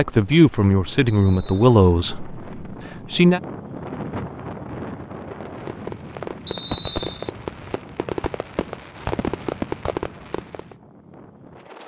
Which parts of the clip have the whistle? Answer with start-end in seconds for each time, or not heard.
1.1-1.7, 6.5-7.3.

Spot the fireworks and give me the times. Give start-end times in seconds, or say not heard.
5.2-10.8.